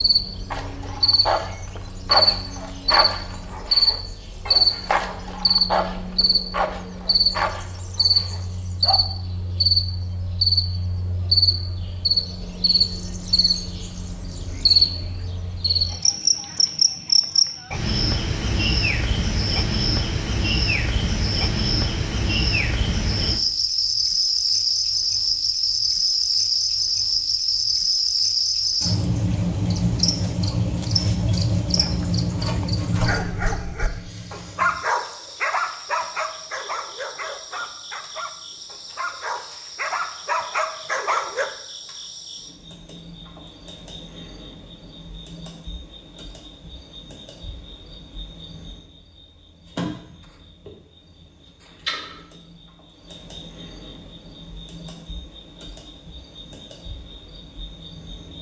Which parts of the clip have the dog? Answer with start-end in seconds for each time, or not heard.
0.5-9.0, 33.0-41.5.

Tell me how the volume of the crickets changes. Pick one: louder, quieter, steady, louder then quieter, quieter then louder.
quieter.